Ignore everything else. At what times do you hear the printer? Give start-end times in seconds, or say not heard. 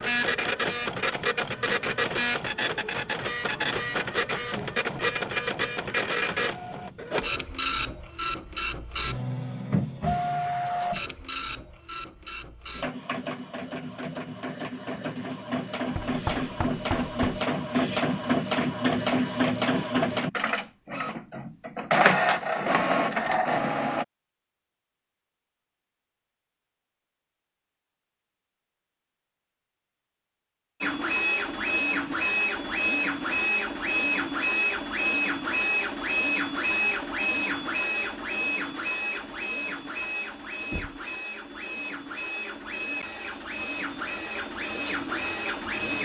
0.0-24.1, 30.8-46.0.